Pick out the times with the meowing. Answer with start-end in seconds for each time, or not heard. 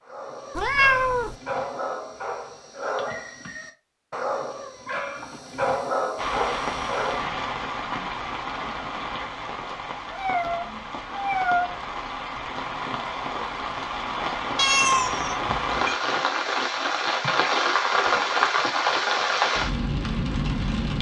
0.6-1.4, 10.1-11.8, 14.6-15.9.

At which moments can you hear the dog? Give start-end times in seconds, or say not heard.
0.1-7.3.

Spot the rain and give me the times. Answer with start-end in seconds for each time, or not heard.
6.2-20.9.